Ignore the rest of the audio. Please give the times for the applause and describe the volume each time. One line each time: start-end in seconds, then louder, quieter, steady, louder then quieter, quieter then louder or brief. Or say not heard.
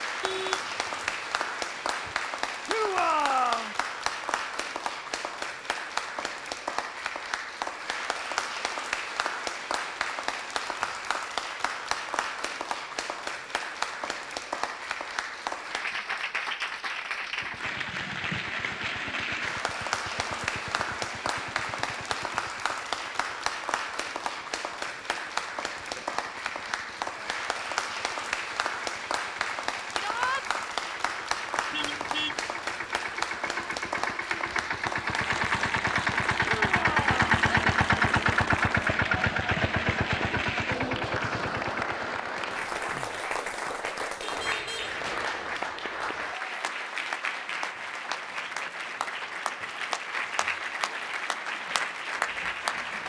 0.0-53.0 steady.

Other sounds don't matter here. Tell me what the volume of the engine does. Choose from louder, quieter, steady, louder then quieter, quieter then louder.
quieter then louder.